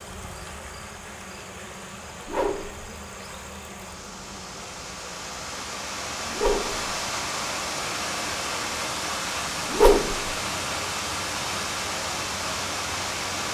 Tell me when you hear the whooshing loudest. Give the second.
10 s.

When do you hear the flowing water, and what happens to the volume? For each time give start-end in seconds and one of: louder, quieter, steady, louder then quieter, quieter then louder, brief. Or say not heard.
0.0-13.4 louder.